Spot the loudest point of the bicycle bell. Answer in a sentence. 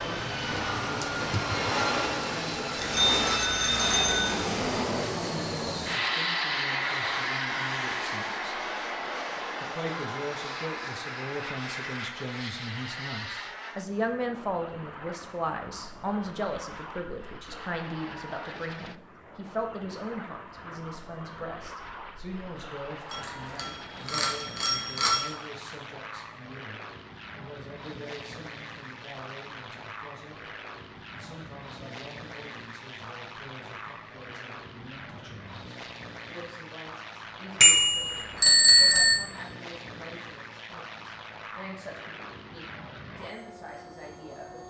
The loudest moment of the bicycle bell is at 39 seconds.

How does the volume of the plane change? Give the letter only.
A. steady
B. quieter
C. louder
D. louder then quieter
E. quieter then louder
B.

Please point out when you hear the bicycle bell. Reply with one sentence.
The bicycle bell can be heard from 2.8 to 4.3 s, from 23.1 to 25.3 s and from 37.6 to 39.1 s.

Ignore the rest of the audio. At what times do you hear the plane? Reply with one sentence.
The plane can be heard from 0.0 to 44.6 s.